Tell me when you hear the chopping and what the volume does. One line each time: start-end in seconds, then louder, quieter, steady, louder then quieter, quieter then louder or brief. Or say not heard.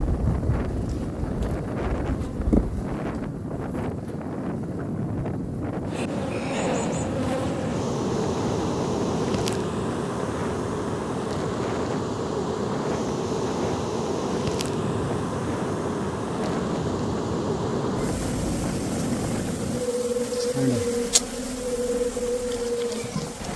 not heard.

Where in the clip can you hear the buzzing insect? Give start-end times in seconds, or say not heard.
0.0-23.5.